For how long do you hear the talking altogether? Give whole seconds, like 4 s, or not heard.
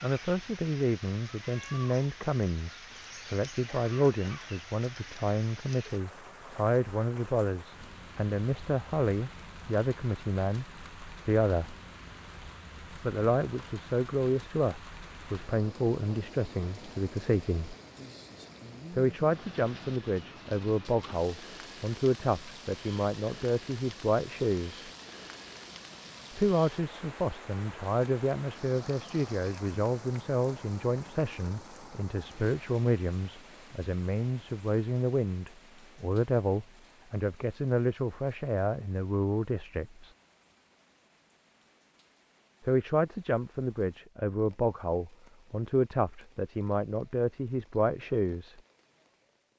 42 s.